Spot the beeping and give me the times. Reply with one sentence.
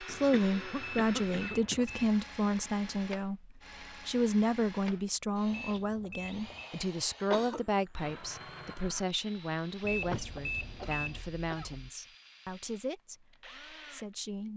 You can hear the beeping from 0.8 to 2.2 s, from 5.5 to 6.7 s and from 9.8 to 11.2 s.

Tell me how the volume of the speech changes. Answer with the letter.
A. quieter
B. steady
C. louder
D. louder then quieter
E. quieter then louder
A.